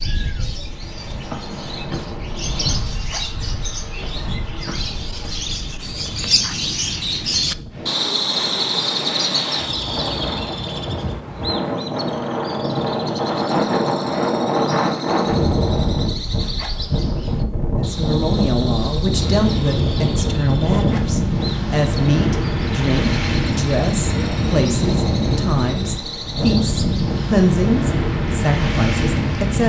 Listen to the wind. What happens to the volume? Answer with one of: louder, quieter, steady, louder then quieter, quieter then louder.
louder.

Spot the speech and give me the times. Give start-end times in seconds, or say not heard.
17.8-29.6.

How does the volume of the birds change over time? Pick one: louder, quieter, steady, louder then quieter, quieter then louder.
louder then quieter.